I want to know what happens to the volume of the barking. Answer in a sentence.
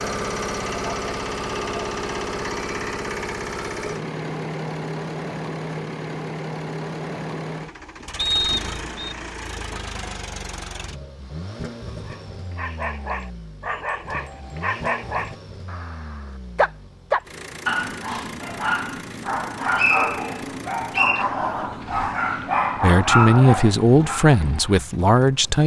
The loudness of the barking goes up.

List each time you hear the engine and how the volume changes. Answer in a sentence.
You can hear the engine from 0.0 to 25.6 s, getting quieter.